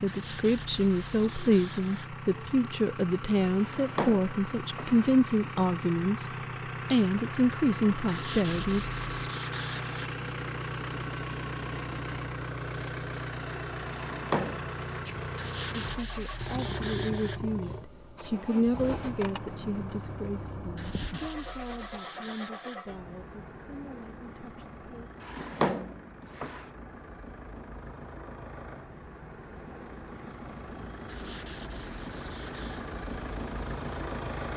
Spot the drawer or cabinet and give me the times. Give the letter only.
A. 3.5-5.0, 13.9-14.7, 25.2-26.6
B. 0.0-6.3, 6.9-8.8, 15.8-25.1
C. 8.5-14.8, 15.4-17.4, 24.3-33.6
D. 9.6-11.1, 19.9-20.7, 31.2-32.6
A.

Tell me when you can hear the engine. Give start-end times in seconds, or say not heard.
0.0-34.5.